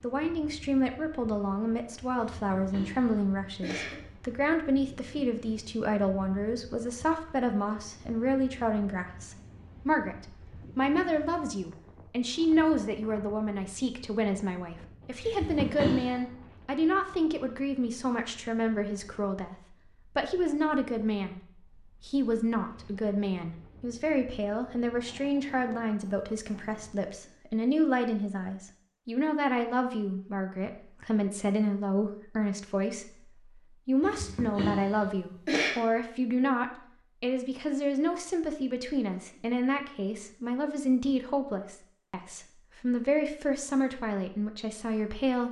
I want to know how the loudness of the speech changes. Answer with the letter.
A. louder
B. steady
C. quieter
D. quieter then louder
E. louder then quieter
B.